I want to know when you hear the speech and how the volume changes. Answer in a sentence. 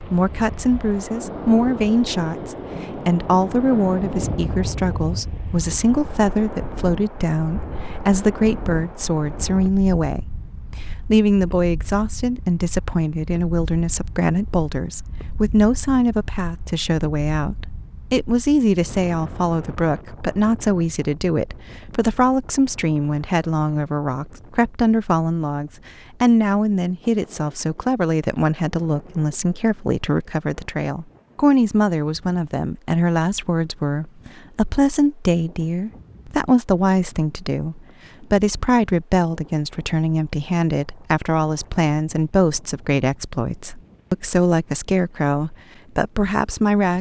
You can hear the speech from 0.0 to 46.9 s, at a steady volume.